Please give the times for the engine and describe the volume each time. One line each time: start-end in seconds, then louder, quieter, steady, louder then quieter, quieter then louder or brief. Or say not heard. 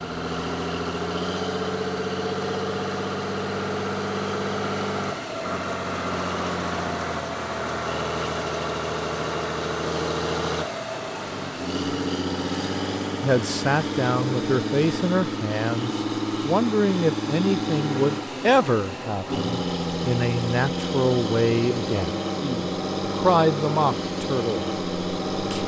0.0-25.6 steady.